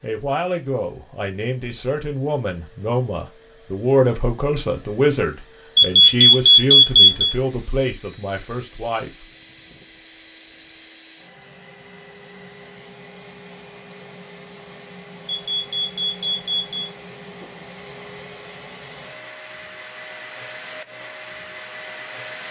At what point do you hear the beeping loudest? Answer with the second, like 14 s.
7 s.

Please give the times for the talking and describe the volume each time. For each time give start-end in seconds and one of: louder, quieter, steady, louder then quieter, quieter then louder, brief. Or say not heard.
0.0-9.2 louder then quieter.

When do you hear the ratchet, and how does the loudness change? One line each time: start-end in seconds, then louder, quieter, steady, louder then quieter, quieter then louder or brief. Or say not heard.
not heard.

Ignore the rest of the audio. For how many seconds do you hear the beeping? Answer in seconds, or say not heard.
3 s.